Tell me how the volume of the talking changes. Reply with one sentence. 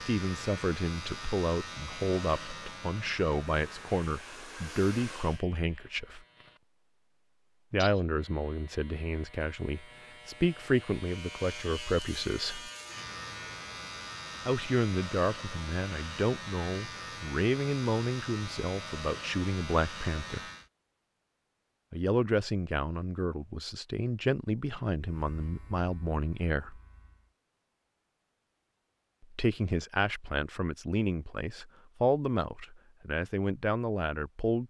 The loudness of the talking stays about the same.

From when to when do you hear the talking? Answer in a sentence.
The talking can be heard from 0.1 to 6.2 s, from 7.7 to 12.7 s, from 14.4 to 20.4 s, from 21.9 to 26.8 s and from 29.2 to 34.6 s.